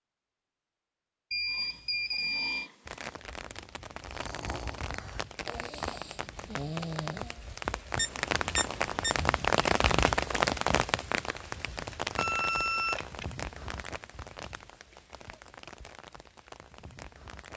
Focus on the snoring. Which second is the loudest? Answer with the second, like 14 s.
7 s.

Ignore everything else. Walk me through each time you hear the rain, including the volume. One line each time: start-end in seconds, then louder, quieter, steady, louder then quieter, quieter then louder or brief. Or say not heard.
2.9-17.5 louder then quieter.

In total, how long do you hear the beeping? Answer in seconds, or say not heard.
4 s.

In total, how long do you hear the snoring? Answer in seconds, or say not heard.
6 s.